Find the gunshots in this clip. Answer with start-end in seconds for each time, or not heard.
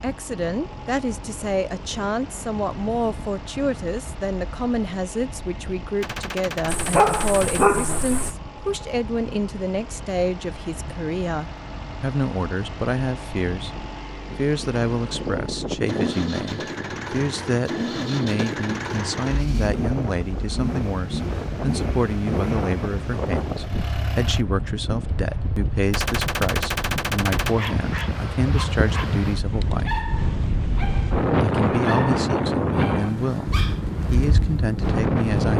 6.0-7.7, 25.9-27.6.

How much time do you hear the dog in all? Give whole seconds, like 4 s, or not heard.
8 s.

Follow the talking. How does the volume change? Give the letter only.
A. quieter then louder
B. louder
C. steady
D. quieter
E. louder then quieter
C.